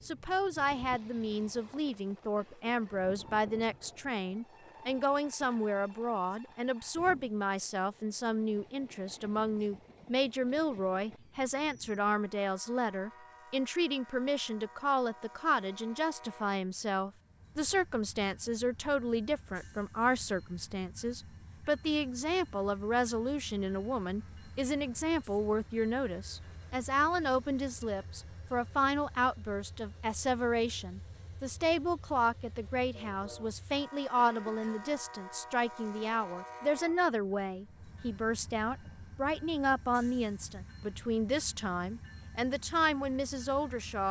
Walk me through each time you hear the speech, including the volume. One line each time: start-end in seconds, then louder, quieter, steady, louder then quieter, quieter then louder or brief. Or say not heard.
0.0-44.0 steady.